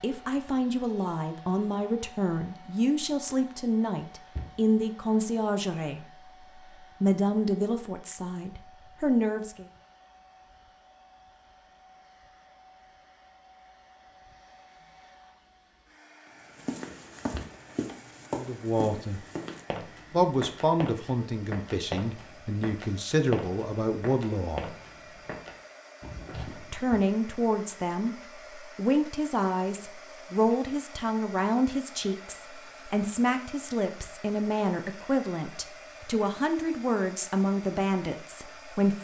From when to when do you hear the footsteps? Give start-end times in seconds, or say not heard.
16.6-26.9.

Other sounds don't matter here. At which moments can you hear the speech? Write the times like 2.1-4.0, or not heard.
0.0-6.0, 7.0-9.7, 18.4-19.2, 20.1-24.6, 26.6-39.0.